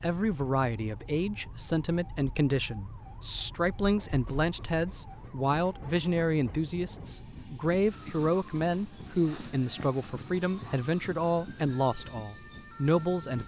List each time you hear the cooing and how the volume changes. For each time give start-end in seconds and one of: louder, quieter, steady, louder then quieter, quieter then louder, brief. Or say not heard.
not heard.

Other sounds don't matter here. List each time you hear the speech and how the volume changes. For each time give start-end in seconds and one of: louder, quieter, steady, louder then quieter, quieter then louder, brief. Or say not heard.
0.0-13.4 steady.